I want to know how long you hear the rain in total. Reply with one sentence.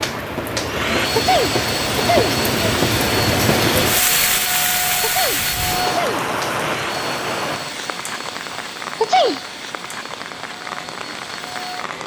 The rain can be heard for 12 seconds in total.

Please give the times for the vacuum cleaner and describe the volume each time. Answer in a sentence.
The vacuum cleaner can be heard from 0.0 to 12.0 s, getting quieter.